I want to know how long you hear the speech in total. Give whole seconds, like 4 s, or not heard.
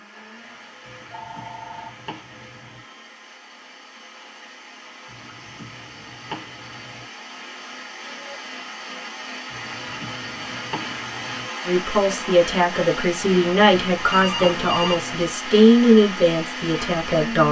6 s.